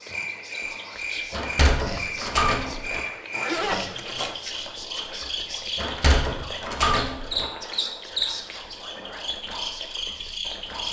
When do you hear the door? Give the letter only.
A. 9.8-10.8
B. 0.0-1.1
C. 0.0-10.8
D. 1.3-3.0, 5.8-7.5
D.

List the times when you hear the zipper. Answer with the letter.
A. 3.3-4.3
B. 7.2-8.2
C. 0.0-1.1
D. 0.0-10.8
A.